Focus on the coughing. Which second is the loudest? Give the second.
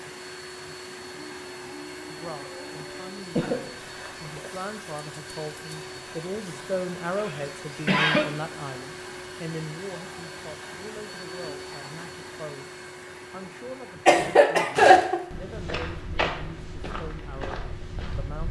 15 s.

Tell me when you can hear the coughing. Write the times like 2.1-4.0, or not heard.
3.4-4.5, 7.2-8.2, 14.1-15.2.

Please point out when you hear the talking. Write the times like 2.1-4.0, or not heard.
2.1-12.7, 13.3-18.4.